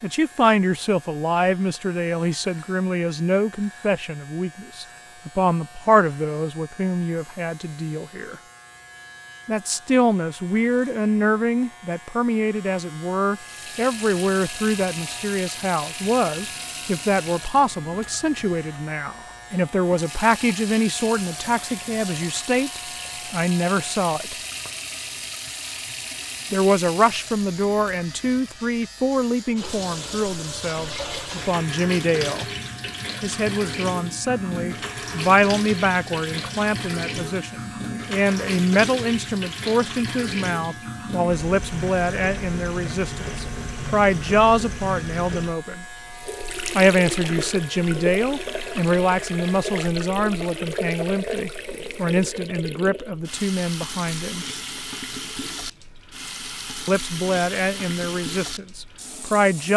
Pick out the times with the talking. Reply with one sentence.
You can hear the talking from 0.0 to 8.4 s, from 9.4 to 24.4 s, from 26.5 to 32.5 s, from 33.2 to 45.9 s, from 46.8 to 54.5 s and from 56.9 to 59.7 s.